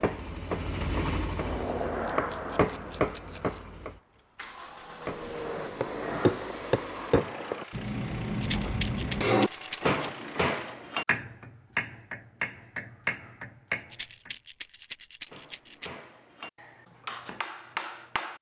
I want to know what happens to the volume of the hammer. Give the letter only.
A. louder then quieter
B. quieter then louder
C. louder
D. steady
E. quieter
E.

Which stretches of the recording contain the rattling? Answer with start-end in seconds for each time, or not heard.
2.0-3.6, 8.4-10.1, 13.9-15.9.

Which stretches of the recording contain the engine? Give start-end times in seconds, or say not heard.
0.0-10.6.